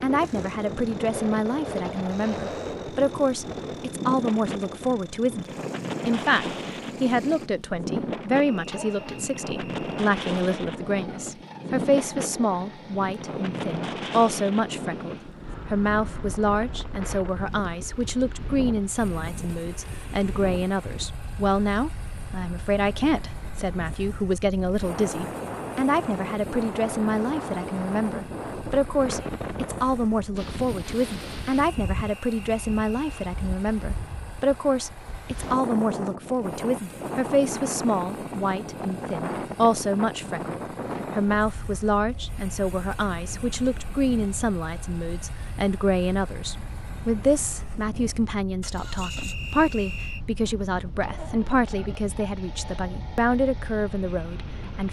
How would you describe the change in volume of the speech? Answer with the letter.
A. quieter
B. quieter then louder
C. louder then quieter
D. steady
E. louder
D.